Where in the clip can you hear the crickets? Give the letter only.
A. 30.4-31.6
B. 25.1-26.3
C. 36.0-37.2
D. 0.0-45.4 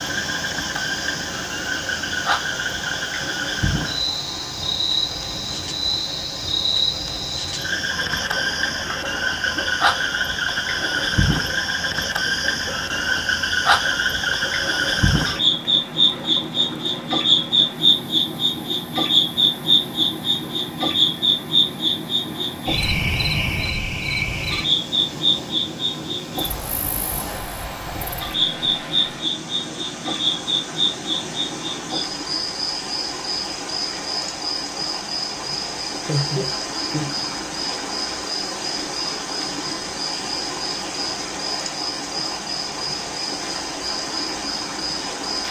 D.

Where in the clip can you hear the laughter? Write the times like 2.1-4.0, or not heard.
36.0-37.2.